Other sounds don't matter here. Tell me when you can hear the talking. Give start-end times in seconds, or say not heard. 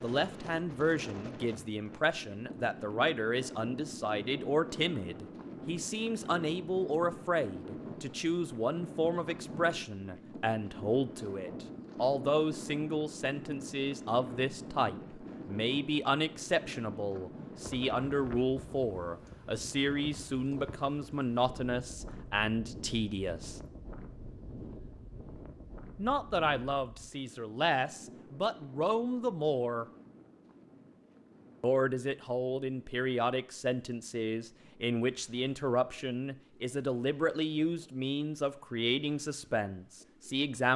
0.0-23.6, 25.9-29.9, 31.6-40.7.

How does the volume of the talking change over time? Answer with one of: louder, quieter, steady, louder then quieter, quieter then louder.
steady.